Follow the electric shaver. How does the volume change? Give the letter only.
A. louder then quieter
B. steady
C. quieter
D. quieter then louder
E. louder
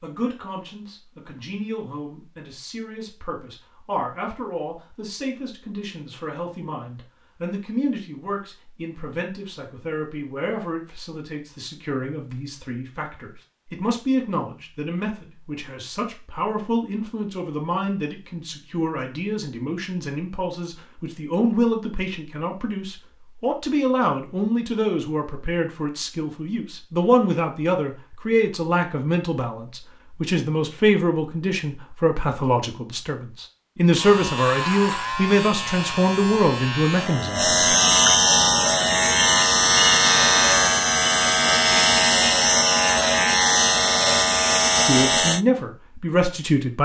E.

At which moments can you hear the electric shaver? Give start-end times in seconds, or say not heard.
34.0-45.4.